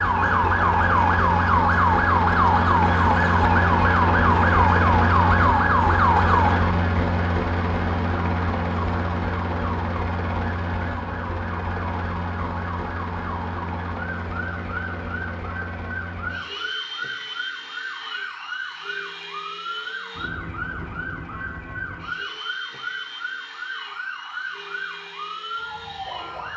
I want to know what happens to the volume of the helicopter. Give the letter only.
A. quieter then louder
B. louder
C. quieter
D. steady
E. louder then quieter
C.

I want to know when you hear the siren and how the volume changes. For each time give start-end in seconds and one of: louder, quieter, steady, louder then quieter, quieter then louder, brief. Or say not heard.
0.0-26.5 quieter.